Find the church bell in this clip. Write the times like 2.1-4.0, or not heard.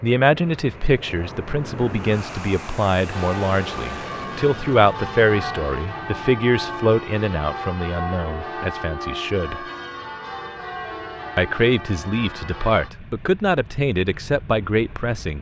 3.0-12.9.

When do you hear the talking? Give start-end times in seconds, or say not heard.
0.0-9.7, 11.3-15.3.